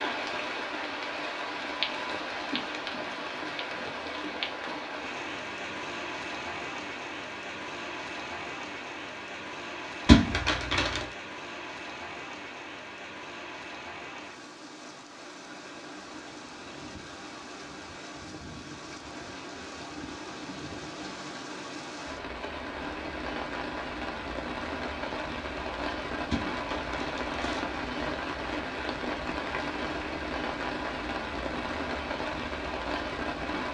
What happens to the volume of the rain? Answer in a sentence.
The loudness of the rain goes down, then up.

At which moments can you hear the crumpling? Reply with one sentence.
You can hear the crumpling from 10.1 to 11.1 s and from 26.3 to 27.8 s.